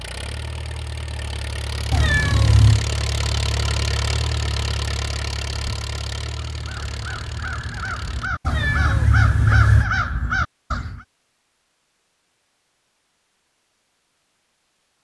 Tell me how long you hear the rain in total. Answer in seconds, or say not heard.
not heard.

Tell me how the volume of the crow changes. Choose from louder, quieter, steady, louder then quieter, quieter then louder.
louder.